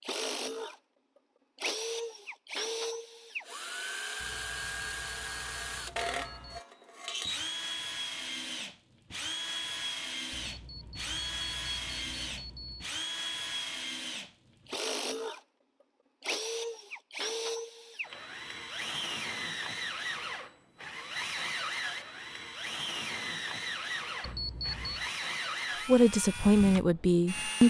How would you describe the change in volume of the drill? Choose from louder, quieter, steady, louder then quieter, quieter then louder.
steady.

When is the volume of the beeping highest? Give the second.
25 s.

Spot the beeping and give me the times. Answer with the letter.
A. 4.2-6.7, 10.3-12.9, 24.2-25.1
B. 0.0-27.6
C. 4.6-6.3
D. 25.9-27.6
A.